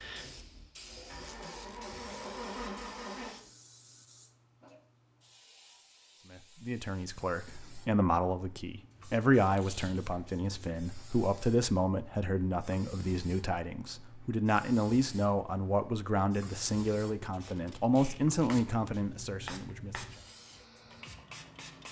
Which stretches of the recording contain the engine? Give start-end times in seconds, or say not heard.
0.0-3.4.